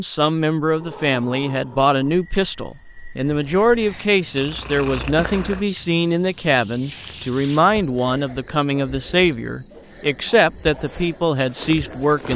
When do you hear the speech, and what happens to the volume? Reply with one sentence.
The speech can be heard from 0.0 to 12.3 s, at a steady volume.